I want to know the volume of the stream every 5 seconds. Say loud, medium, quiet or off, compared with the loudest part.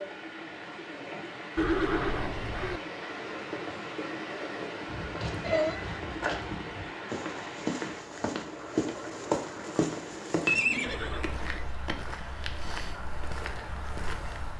loud, loud, medium.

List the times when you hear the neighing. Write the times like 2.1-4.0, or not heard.
1.6-2.8, 5.4-6.7, 10.4-11.4.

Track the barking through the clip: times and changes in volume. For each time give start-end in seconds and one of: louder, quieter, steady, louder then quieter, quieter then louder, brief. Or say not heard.
not heard.